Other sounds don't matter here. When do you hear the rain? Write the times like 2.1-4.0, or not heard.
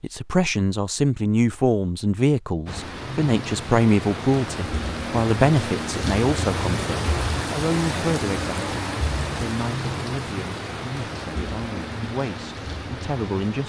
2.6-13.6.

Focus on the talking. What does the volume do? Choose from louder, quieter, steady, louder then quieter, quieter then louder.
quieter.